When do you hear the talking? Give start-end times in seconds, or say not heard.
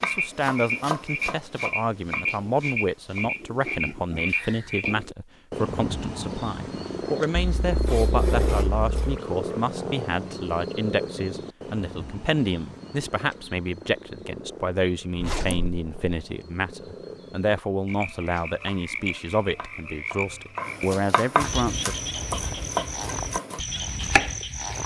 0.0-21.9.